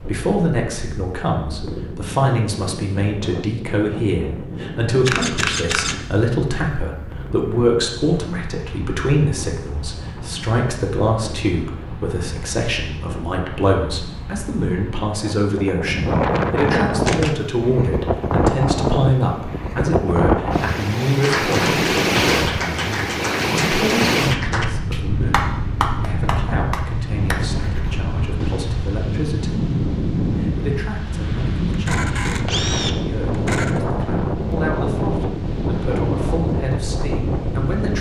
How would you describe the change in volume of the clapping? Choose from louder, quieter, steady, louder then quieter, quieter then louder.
steady.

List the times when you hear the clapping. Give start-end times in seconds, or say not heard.
21.2-27.9.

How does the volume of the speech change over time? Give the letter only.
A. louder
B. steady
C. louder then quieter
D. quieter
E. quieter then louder
D.